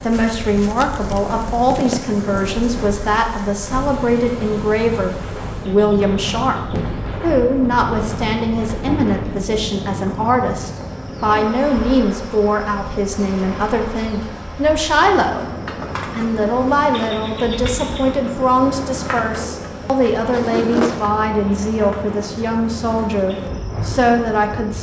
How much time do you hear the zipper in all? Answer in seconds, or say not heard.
3 s.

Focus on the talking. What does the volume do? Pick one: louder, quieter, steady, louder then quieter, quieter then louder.
steady.